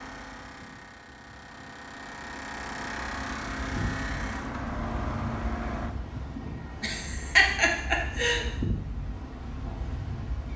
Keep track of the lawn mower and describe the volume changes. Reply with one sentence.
The loudness of the lawn mower goes up.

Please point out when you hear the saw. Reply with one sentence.
You can't hear the saw here.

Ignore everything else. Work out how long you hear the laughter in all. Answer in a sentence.
You can hear the laughter for 2 seconds altogether.